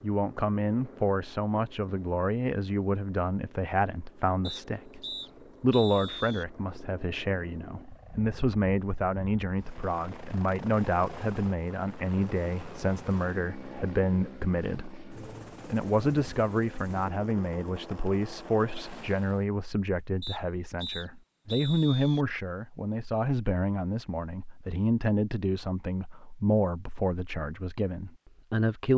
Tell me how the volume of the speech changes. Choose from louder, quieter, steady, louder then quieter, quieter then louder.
steady.